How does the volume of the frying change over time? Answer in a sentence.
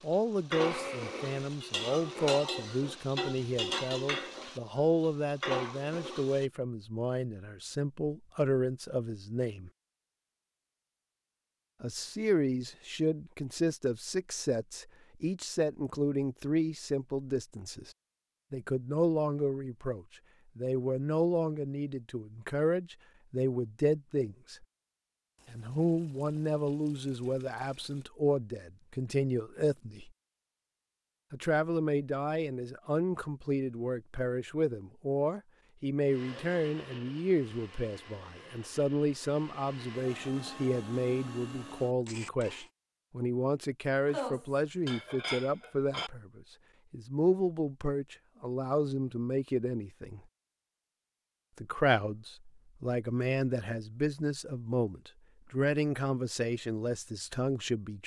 The volume of the frying stays about the same.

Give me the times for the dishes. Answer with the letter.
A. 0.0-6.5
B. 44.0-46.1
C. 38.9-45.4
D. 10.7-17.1
B.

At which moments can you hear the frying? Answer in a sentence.
The frying can be heard from 0.0 to 6.5 s.